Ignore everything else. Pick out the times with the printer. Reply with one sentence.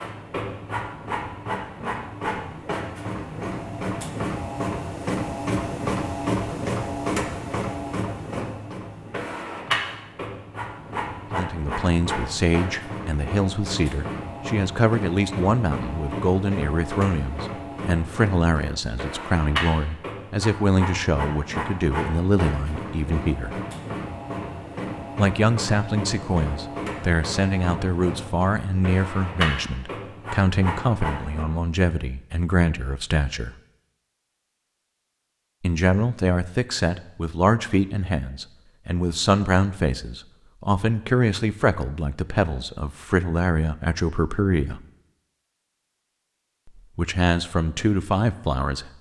You can hear the printer from 0.0 to 31.4 s.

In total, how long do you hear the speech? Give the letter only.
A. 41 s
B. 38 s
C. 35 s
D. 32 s
D.